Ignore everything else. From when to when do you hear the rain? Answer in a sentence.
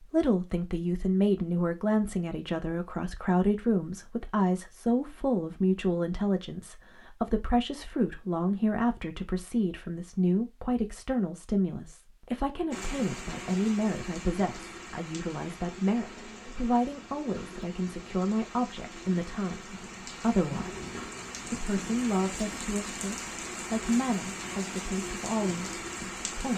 You can hear the rain from 12.7 to 26.5 s.